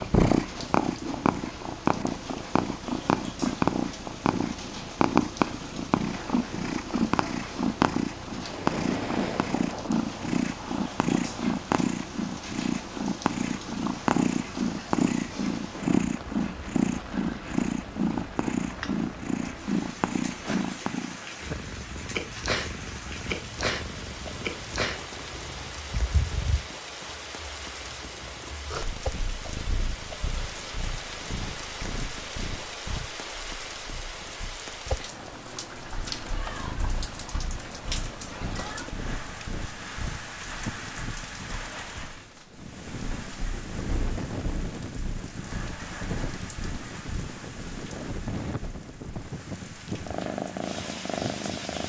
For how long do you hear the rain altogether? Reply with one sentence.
You can hear the rain for 52 seconds altogether.